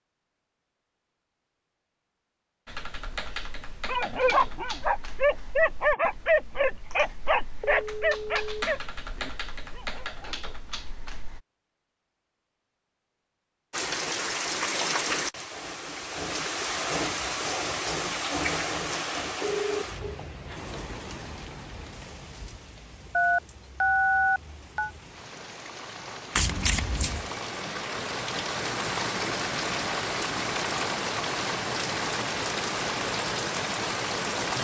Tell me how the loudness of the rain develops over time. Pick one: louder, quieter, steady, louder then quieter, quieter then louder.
quieter then louder.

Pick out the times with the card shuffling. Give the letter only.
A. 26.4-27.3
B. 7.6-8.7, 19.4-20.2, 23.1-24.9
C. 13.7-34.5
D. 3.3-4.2
A.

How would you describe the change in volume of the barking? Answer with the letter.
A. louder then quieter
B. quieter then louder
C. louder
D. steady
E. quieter
E.